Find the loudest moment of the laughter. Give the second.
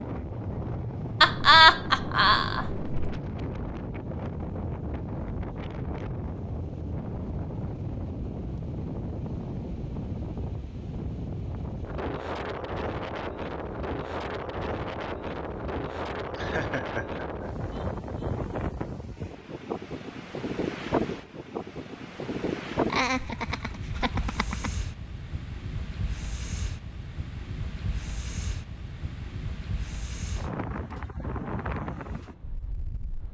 2 s.